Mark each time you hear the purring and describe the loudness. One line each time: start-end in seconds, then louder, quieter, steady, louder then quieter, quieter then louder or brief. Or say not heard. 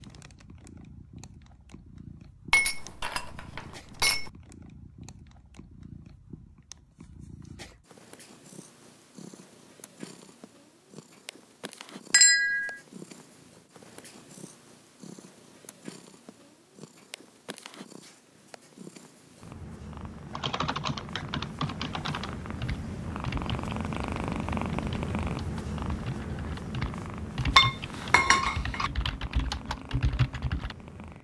0.0-31.1 louder.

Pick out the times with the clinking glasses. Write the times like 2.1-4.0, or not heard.
2.5-4.3, 12.1-12.8, 27.6-28.9.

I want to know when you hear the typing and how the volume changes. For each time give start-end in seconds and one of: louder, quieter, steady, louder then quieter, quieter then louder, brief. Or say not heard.
20.3-30.8 quieter then louder.